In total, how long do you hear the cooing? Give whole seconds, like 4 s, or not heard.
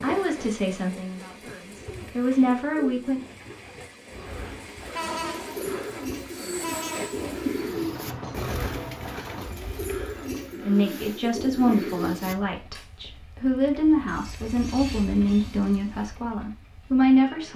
11 s.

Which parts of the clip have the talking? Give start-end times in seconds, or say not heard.
0.0-3.2, 10.6-17.5.